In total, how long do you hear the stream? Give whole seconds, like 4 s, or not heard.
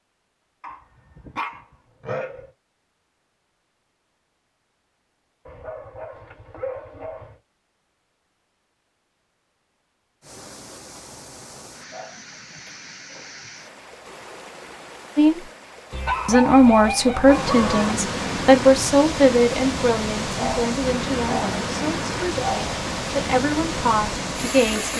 15 s.